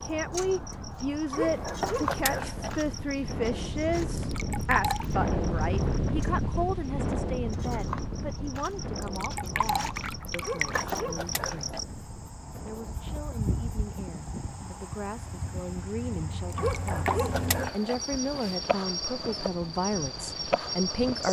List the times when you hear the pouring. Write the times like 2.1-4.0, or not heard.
4.2-5.0, 9.0-11.1, 16.5-17.4.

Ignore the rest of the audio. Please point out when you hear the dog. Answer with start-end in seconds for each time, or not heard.
1.3-3.1, 10.4-11.8, 16.6-18.6.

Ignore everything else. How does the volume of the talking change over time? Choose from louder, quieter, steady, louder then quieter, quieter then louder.
quieter then louder.